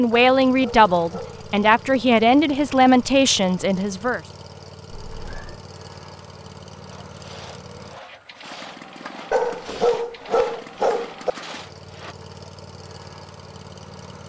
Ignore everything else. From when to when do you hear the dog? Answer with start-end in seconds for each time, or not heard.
0.1-1.7, 9.3-11.3.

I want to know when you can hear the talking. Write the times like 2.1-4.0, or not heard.
0.0-4.2.